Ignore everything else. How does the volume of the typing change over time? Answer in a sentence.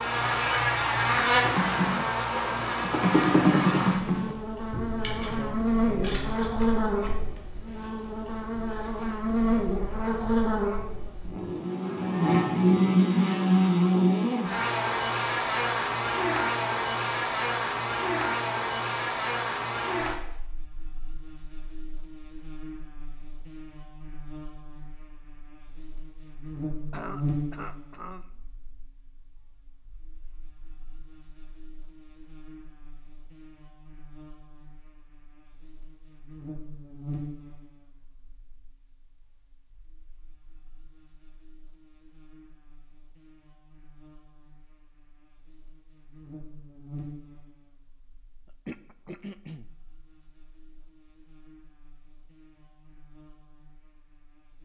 The volume of the typing goes up, then down.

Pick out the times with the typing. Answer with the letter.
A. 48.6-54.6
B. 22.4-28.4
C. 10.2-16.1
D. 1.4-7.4
D.